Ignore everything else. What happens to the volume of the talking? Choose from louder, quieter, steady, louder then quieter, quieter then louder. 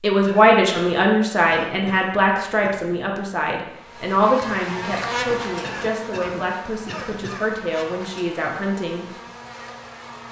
quieter.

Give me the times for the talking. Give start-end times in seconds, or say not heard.
0.0-9.1.